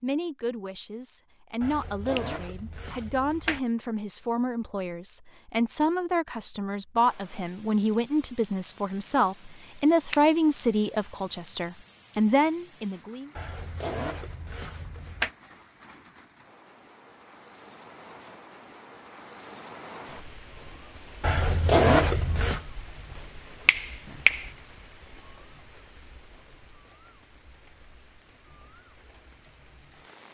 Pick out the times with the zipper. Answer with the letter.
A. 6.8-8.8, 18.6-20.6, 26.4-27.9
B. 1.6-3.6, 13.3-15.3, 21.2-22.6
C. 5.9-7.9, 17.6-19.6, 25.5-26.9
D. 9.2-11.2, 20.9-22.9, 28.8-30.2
B.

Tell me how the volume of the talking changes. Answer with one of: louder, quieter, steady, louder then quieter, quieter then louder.
louder.